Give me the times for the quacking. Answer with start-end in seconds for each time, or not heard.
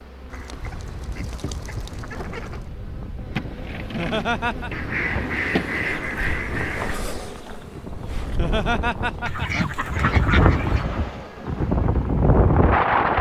0.3-2.6, 4.7-7.0, 9.2-10.8.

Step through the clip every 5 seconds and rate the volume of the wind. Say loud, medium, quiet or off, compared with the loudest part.
quiet, quiet, loud.